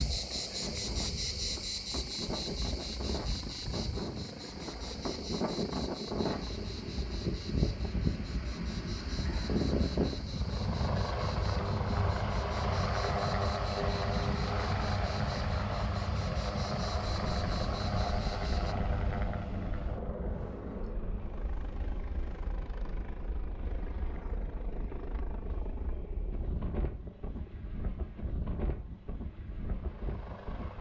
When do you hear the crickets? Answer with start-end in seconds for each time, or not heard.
0.0-18.8.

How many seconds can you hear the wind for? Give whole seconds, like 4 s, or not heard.
31 s.